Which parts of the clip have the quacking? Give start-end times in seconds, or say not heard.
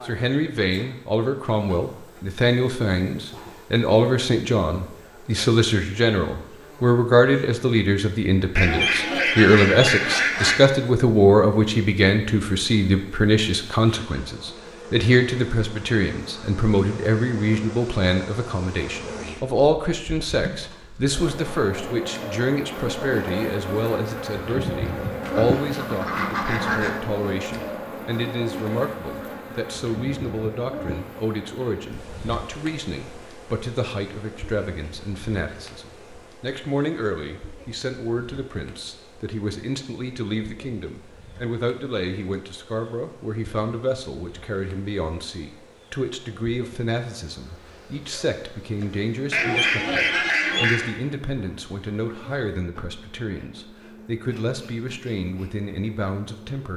8.6-10.6, 25.2-27.0, 49.3-50.9.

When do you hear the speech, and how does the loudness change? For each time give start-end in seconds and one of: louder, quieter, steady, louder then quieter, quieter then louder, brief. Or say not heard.
0.0-56.7 quieter.